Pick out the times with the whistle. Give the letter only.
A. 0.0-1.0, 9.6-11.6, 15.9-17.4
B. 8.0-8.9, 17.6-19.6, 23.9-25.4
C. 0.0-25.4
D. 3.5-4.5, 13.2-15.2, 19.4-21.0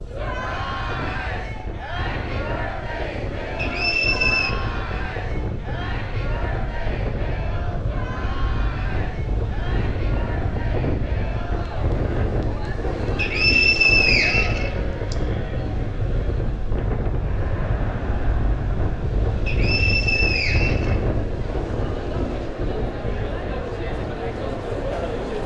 D.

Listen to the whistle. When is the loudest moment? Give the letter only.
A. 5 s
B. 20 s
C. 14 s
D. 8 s
C.